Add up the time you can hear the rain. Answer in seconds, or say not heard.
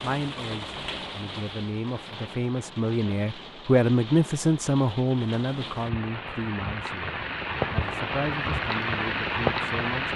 10 s.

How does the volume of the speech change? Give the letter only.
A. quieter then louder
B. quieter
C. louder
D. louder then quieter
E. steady
D.